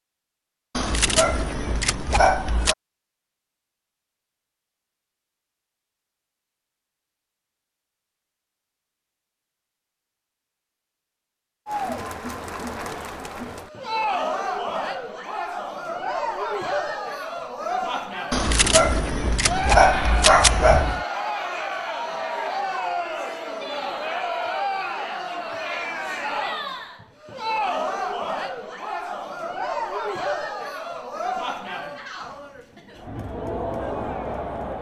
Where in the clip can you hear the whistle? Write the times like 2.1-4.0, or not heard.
not heard.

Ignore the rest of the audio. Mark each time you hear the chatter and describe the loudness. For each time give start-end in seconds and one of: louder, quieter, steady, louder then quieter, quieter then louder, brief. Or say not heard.
11.7-34.7 steady.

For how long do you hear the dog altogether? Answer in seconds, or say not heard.
5 s.